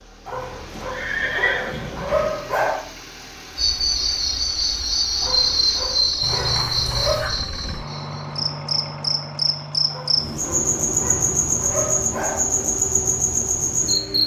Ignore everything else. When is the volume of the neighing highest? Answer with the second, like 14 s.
1 s.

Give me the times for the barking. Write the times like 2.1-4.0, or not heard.
0.2-2.9, 5.2-7.3, 9.8-12.4.